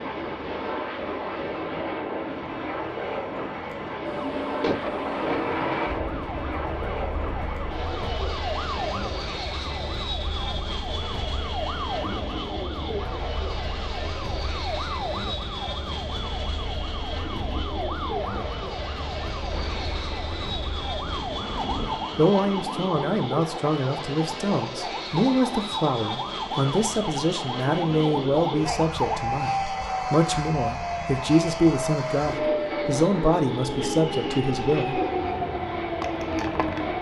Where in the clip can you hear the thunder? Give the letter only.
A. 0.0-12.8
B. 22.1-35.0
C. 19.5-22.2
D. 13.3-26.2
C.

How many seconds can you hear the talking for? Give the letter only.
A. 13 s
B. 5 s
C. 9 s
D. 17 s
A.